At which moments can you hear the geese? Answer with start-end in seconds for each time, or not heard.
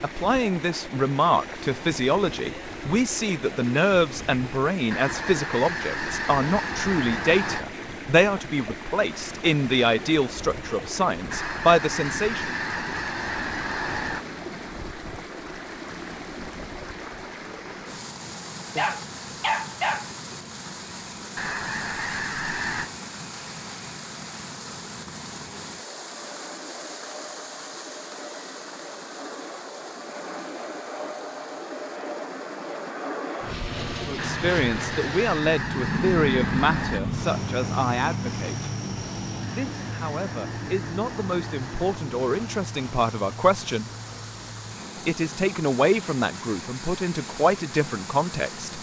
4.9-7.7, 11.3-14.2, 21.4-22.9, 34.1-37.0, 39.6-42.0.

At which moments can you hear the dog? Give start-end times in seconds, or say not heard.
18.8-20.1.